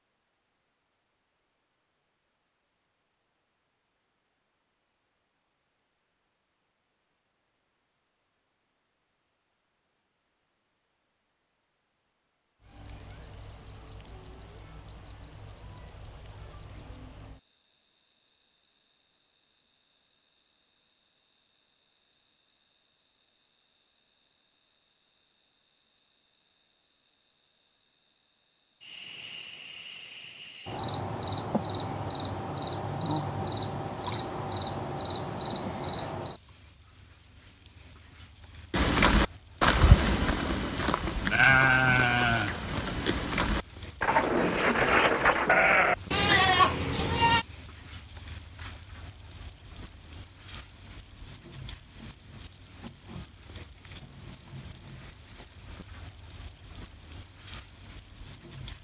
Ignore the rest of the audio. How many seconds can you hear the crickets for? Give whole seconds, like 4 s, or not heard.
46 s.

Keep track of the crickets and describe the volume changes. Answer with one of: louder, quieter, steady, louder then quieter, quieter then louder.
louder.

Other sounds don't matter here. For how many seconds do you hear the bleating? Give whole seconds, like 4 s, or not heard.
9 s.